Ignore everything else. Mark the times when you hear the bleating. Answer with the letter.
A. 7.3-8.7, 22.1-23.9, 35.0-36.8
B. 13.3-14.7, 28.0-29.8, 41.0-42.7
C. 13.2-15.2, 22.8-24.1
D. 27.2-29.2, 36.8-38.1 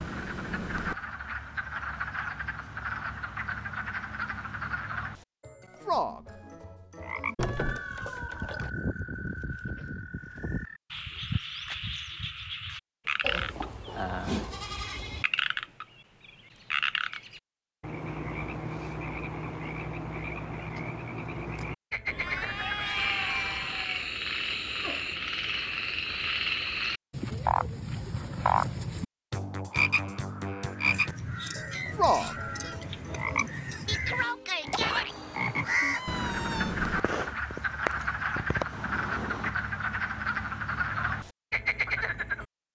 C.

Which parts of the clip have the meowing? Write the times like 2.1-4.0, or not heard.
7.3-8.7, 22.1-23.9, 35.0-36.8.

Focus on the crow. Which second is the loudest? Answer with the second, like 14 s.
36 s.